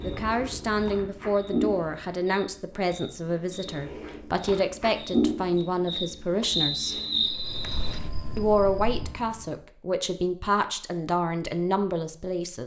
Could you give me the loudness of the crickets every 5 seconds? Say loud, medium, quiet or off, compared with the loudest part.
medium, loud, off.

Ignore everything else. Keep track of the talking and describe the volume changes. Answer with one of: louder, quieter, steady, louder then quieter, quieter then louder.
steady.